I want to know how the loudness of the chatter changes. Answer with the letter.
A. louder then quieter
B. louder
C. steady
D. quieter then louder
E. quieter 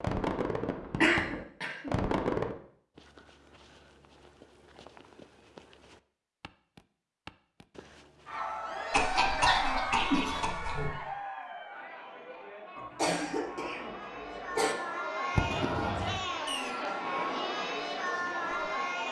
D.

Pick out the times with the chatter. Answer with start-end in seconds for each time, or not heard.
8.2-19.0.